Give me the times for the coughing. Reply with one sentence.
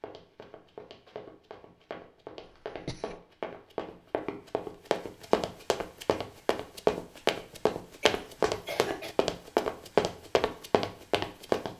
The coughing can be heard from 2.5 to 3.2 s and from 8.0 to 9.2 s.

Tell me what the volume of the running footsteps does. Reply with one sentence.
The loudness of the running footsteps goes up.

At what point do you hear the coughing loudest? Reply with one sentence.
The volume of the coughing peaks at 9 seconds.